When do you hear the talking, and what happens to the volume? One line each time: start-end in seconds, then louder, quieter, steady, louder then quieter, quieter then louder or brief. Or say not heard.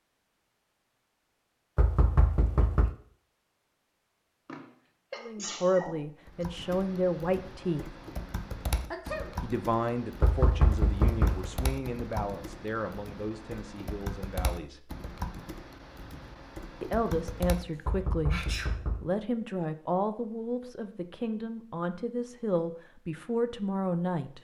5.2-7.9 brief
9.4-14.9 quieter
16.8-24.3 steady.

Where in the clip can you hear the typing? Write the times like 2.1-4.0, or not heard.
6.2-17.9.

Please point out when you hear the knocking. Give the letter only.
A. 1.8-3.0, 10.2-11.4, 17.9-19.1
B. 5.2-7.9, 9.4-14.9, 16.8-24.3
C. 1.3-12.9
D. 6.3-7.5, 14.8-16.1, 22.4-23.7
A.